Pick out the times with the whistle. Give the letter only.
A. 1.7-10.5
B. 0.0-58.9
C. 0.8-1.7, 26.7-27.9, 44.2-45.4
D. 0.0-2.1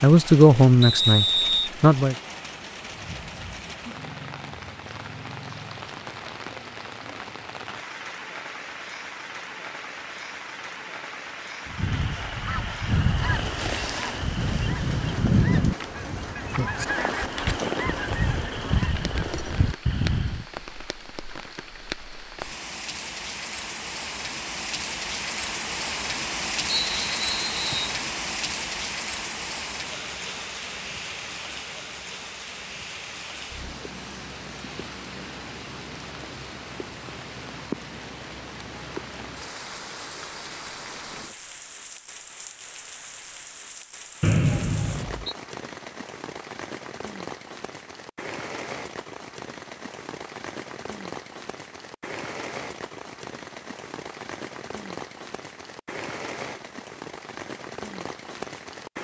C.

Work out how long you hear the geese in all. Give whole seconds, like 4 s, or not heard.
9 s.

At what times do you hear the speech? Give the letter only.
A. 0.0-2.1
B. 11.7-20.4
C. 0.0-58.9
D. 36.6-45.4
A.